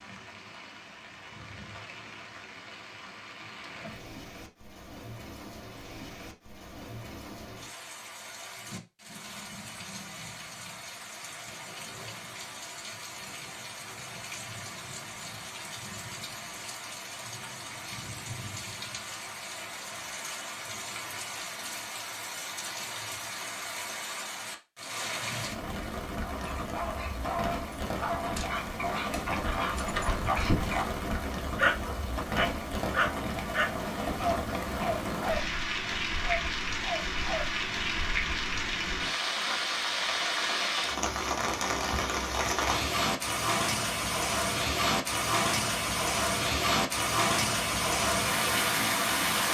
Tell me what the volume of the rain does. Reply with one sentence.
The loudness of the rain goes up.